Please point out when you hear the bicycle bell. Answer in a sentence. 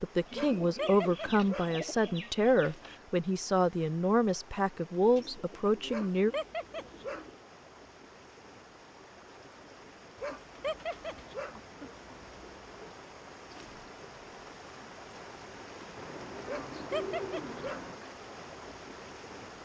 You can't hear the bicycle bell here.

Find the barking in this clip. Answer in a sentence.
You can hear the barking from 0.3 to 1.7 s, from 5.8 to 7.2 s, from 10.2 to 11.6 s and from 16.4 to 17.9 s.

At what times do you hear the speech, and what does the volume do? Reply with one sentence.
The speech can be heard from 0.0 to 6.3 s, at a steady volume.